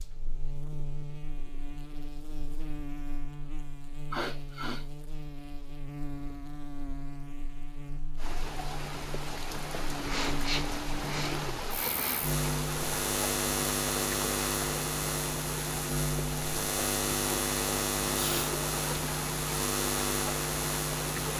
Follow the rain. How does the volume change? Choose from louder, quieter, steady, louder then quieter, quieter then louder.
steady.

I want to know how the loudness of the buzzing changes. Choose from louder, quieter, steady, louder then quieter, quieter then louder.
louder.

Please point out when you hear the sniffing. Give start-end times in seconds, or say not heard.
4.1-4.8, 10.1-12.2, 18.1-18.6.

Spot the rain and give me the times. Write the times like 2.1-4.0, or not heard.
8.2-21.3.